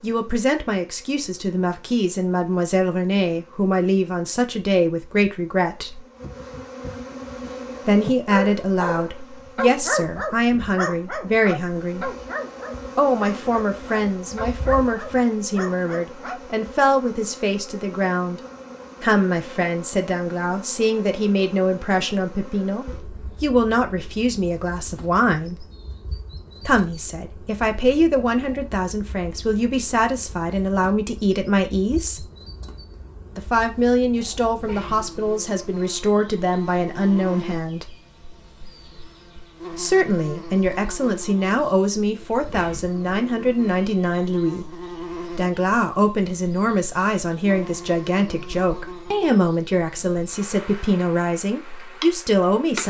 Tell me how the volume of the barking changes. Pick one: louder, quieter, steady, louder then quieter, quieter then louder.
quieter.